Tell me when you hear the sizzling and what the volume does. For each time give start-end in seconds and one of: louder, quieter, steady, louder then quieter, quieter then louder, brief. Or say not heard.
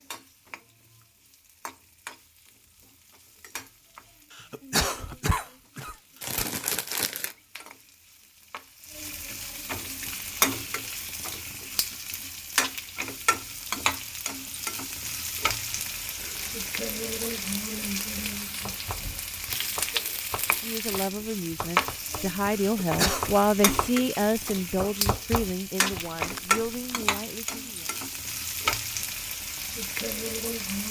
0.0-30.8 louder.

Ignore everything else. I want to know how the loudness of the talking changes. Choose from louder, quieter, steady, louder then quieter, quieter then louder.
louder then quieter.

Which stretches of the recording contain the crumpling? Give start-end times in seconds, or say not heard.
6.2-7.3, 16.2-17.6, 25.9-27.0.